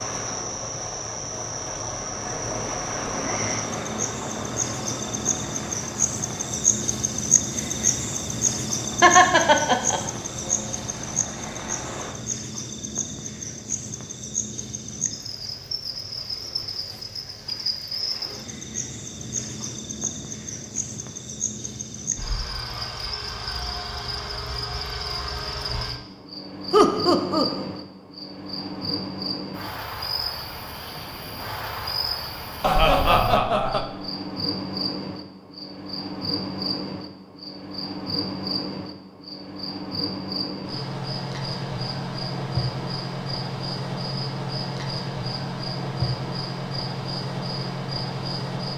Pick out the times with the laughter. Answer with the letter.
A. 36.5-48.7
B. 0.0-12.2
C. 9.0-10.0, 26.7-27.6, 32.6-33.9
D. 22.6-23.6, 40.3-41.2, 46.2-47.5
C.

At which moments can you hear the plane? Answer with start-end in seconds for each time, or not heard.
0.0-12.2.